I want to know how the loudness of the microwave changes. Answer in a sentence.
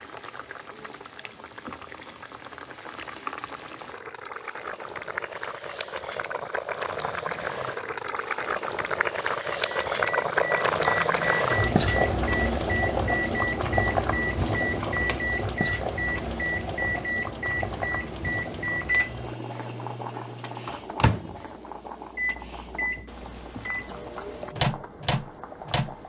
The loudness of the microwave stays about the same.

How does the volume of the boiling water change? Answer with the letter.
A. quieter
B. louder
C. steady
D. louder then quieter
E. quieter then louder
D.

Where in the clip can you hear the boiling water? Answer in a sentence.
You can hear the boiling water from 0.0 to 26.0 s.